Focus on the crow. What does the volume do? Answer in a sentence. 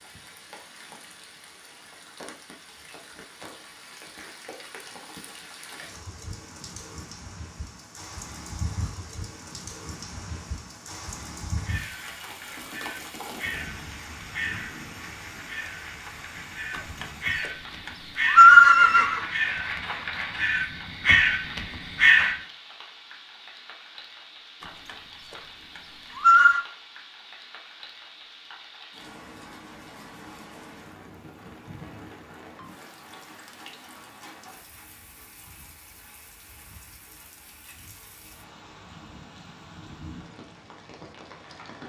The loudness of the crow goes up.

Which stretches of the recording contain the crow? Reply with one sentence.
You can hear the crow from 11.6 to 22.4 s.